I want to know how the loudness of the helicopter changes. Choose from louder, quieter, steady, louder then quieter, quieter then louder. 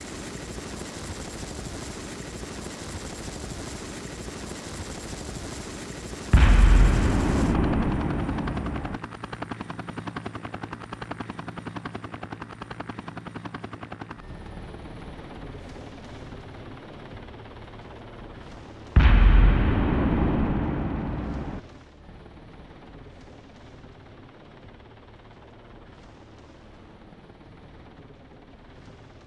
quieter.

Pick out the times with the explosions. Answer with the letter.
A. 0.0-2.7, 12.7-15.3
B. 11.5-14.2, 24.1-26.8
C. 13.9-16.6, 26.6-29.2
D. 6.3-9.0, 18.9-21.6
D.